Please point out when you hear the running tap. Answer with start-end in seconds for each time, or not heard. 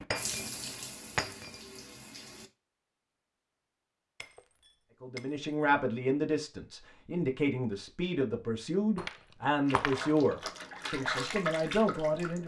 0.0-2.5, 9.7-12.4.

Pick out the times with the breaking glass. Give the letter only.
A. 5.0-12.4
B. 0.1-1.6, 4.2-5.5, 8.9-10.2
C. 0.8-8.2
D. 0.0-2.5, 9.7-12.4
B.